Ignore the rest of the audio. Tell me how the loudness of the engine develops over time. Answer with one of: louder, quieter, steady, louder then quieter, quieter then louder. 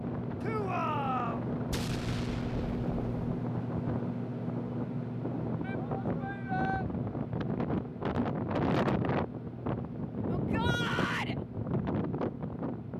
quieter.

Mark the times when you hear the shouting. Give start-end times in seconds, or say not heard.
0.4-1.4, 5.6-6.8, 10.3-11.3.